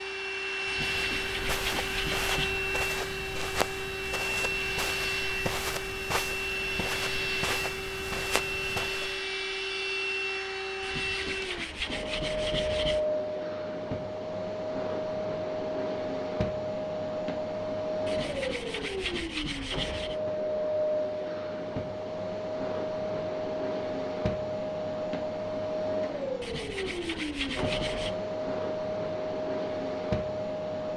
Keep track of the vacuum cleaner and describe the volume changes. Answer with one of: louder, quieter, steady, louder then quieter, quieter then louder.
steady.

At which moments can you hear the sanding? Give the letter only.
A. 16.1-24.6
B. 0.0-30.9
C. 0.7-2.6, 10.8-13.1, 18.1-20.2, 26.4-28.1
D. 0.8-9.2
C.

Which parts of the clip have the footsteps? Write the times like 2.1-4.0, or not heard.
0.8-9.2.